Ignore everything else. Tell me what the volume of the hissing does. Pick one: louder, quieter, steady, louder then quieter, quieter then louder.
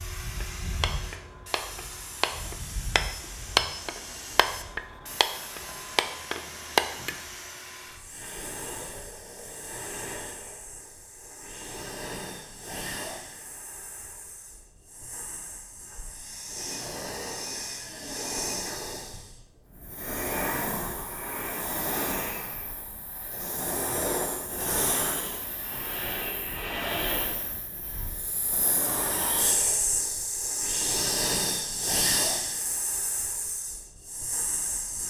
louder.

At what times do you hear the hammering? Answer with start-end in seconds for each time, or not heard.
0.4-7.2.